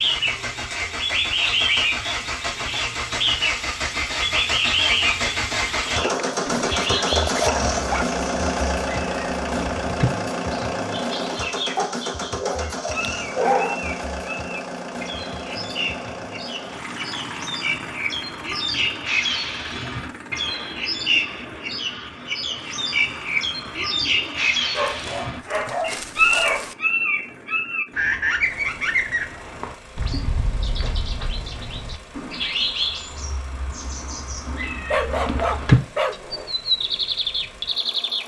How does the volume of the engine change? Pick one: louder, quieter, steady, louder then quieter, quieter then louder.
quieter.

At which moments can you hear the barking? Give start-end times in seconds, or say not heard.
6.0-8.1, 11.8-13.8, 24.8-26.8, 34.9-36.5.